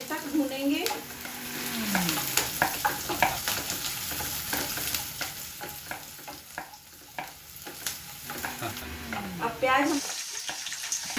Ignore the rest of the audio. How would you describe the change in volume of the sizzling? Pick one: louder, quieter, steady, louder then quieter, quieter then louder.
quieter then louder.